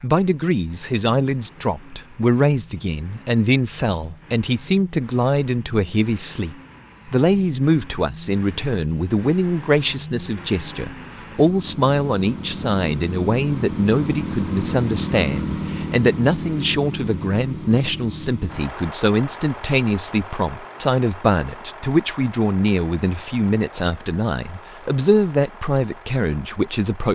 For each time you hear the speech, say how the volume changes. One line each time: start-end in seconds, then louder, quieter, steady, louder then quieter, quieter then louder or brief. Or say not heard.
0.0-27.1 steady.